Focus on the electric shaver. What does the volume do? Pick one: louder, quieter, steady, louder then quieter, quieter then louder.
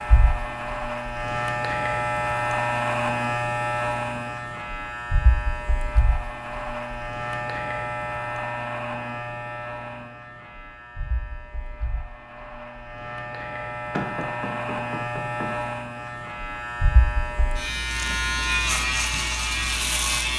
quieter then louder.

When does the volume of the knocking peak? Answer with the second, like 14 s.
14 s.